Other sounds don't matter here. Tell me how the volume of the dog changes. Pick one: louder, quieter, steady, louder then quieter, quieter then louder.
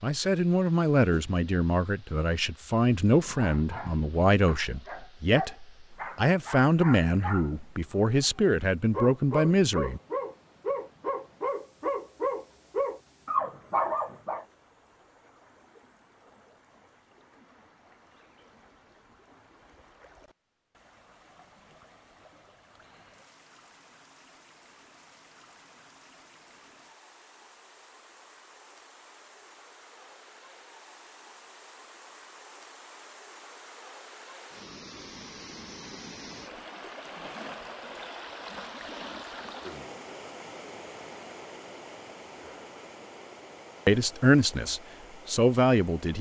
louder.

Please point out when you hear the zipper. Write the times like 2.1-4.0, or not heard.
not heard.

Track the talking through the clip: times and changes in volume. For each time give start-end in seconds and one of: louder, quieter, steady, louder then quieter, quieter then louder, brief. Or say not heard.
0.0-10.0 steady
43.9-46.1 brief.